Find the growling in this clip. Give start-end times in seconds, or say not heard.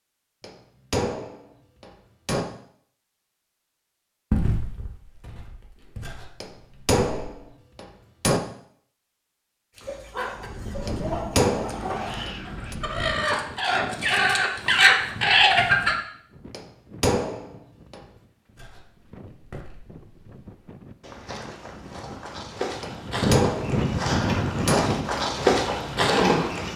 11.6-12.2.